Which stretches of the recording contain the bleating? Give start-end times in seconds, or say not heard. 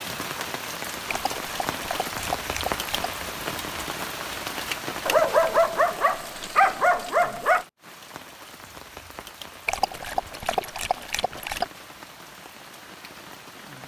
not heard.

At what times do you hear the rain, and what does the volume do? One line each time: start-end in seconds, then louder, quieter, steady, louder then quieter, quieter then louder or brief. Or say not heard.
0.0-13.8 quieter.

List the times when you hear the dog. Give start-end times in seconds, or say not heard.
1.1-3.1, 5.0-7.7, 9.7-11.7.